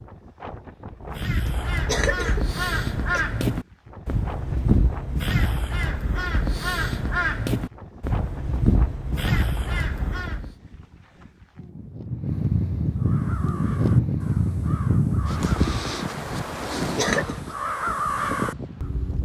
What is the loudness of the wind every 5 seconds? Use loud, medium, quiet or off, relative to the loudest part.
quiet, quiet, loud, loud.